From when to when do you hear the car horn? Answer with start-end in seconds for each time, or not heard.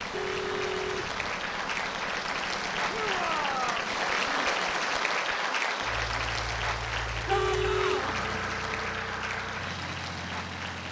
0.1-1.3, 7.3-8.1.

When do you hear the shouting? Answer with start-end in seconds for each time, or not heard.
2.9-3.9, 7.2-8.2.